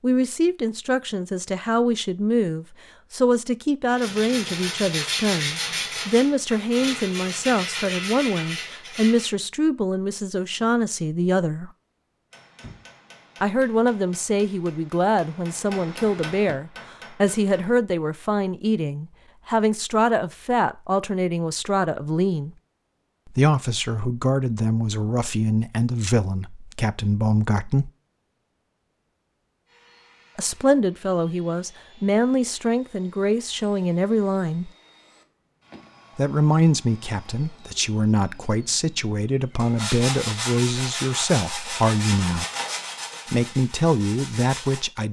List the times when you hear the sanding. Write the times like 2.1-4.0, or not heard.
3.9-9.3, 39.5-44.9.